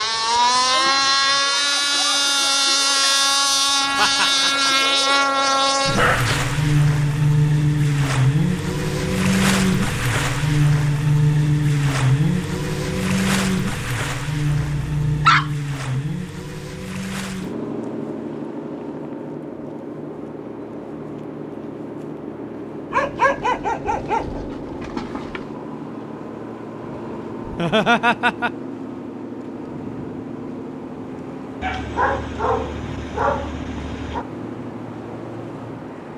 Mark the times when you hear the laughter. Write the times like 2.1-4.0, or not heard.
4.0-4.7, 27.4-28.5.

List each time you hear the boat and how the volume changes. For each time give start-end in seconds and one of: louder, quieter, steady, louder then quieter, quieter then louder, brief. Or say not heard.
0.0-36.1 quieter.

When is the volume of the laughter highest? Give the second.
28 s.